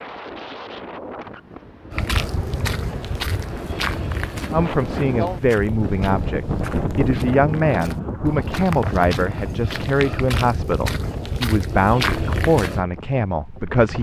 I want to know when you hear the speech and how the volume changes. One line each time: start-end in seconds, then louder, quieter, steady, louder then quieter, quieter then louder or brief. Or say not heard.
4.5-13.9 steady.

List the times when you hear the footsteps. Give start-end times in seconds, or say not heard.
1.9-12.8.